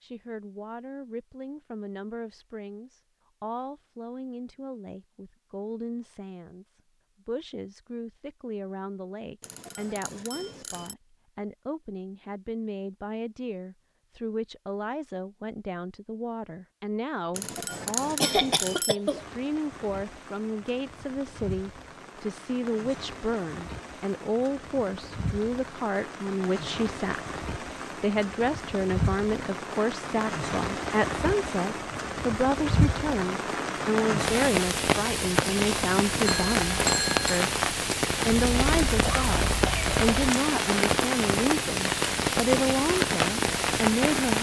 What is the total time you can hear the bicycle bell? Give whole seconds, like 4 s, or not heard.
4 s.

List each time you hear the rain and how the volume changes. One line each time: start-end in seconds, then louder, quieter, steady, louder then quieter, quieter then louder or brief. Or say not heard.
19.0-44.3 louder.